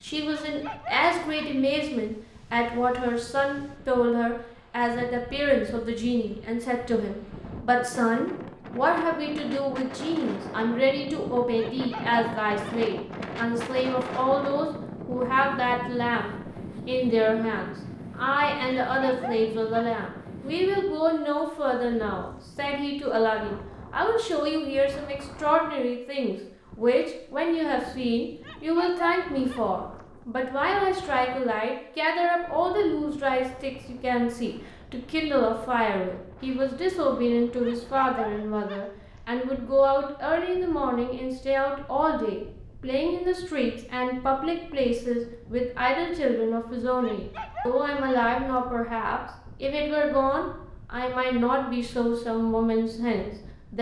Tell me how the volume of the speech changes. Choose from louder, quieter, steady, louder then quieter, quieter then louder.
steady.